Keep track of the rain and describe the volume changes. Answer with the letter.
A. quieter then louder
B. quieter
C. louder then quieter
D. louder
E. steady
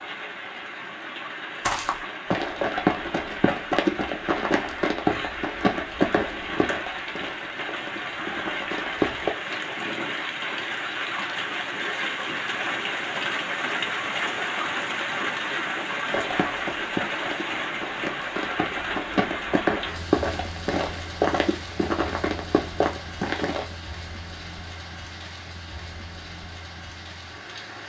C.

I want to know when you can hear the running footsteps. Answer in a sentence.
You can hear the running footsteps from 1.6 to 9.3 s and from 16.1 to 23.8 s.